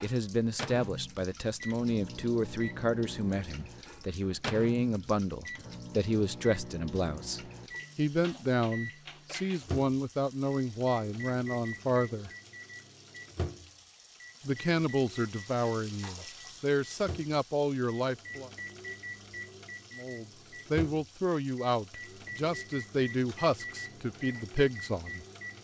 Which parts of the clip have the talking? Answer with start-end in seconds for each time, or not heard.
0.0-12.3, 14.4-18.5, 19.9-25.2.